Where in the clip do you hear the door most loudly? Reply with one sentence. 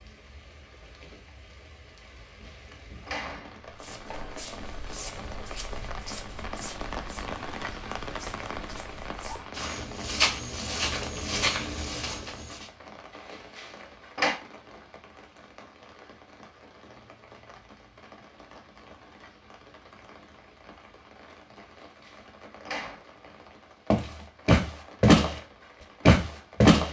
The volume of the door peaks at 14 seconds.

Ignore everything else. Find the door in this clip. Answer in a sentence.
You can hear the door from 2.1 to 4.5 s, from 13.3 to 14.3 s and from 21.8 to 23.0 s.